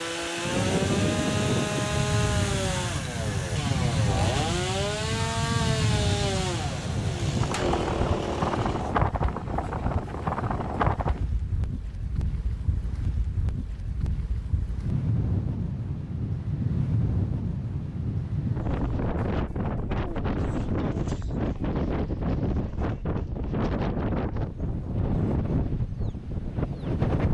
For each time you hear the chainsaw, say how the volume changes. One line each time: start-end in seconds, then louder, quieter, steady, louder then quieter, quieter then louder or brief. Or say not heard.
0.0-8.9 steady.